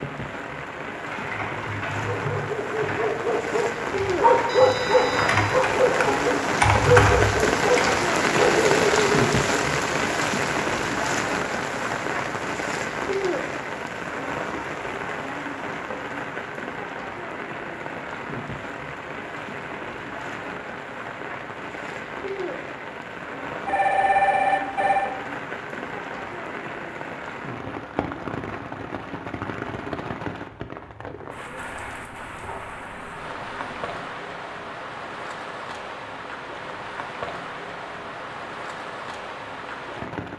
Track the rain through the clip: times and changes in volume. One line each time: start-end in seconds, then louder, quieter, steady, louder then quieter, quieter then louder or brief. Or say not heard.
0.0-40.3 quieter.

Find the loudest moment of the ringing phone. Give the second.
24 s.